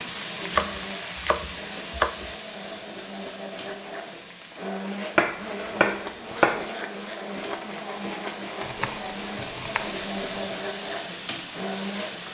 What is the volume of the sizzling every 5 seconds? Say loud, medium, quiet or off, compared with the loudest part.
loud, medium, loud.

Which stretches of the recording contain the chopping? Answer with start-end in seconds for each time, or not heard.
0.5-2.3, 5.2-6.7, 8.6-10.4.